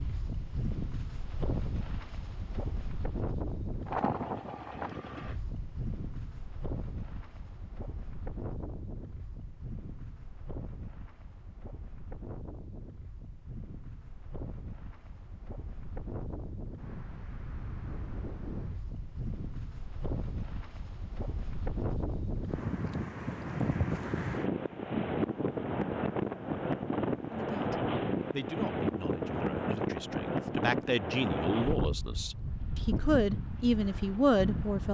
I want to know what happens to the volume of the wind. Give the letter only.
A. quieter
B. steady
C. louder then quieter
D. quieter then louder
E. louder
D.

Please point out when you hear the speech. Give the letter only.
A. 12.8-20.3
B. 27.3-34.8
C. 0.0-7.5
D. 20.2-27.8
B.